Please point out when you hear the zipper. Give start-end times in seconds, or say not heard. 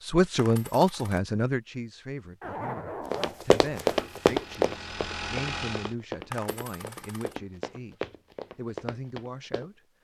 2.4-4.0.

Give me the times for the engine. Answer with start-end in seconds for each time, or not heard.
3.9-6.0.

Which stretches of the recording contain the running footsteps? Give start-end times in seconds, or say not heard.
3.1-9.7.